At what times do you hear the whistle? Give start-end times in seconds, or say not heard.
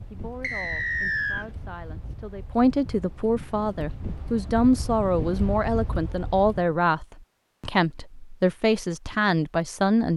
0.4-1.4.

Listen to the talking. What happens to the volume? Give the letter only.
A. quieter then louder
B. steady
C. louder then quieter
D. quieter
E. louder
E.